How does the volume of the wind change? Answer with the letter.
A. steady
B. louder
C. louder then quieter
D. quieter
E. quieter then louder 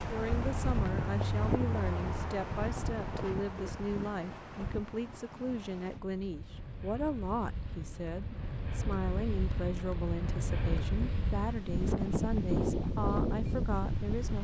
E.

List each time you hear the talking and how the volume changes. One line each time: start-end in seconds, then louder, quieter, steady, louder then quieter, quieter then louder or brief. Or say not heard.
0.1-14.3 steady.